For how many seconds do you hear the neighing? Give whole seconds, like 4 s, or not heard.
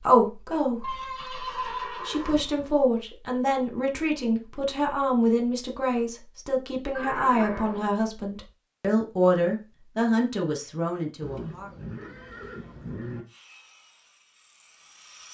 5 s.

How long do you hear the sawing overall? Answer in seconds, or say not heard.
2 s.